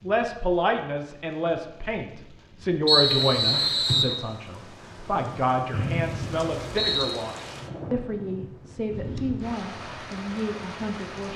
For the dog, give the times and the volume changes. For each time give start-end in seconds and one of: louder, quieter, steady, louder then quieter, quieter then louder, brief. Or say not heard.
not heard.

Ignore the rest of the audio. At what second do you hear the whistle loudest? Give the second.
3 s.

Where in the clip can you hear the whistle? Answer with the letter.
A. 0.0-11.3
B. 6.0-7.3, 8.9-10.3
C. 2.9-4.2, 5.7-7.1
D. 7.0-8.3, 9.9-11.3
C.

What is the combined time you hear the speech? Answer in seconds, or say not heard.
11 s.